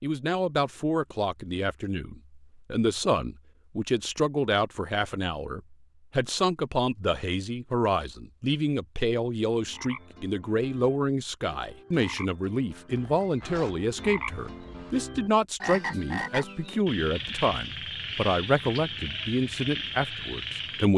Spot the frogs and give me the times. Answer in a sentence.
You can hear the frogs from 9.6 to 20.9 s.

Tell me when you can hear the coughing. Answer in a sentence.
You can't hear the coughing here.